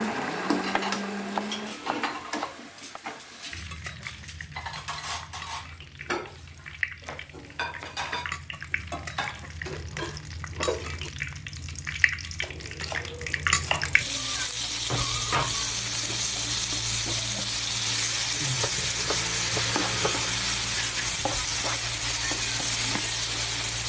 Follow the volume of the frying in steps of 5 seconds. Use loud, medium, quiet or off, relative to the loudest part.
medium, medium, loud, loud, loud.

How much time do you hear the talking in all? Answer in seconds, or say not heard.
not heard.